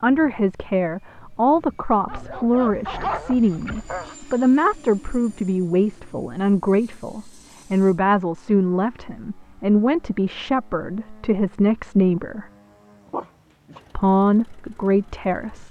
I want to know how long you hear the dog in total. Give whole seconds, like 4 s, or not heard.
3 s.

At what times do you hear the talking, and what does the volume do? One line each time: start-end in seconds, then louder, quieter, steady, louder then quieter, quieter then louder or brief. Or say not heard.
0.0-12.4 steady
13.9-15.6 brief.